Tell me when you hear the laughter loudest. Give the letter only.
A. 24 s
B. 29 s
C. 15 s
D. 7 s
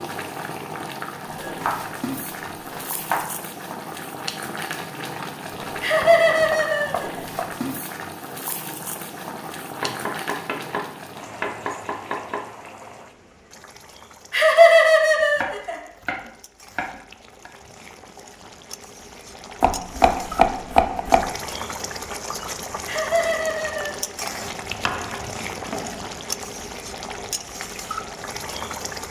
C.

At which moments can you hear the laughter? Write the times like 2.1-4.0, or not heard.
5.8-7.2, 14.3-15.8, 22.9-24.3.